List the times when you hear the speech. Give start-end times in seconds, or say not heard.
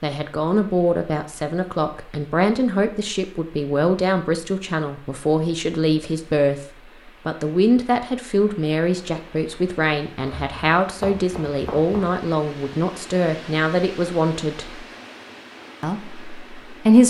0.0-14.8, 15.8-17.0.